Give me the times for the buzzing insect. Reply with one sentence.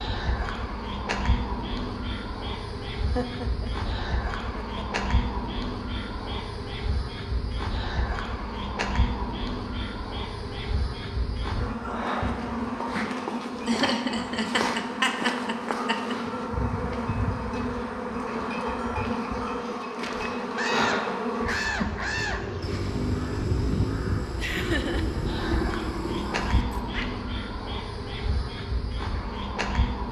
You can hear the buzzing insect from 0.0 to 30.0 s.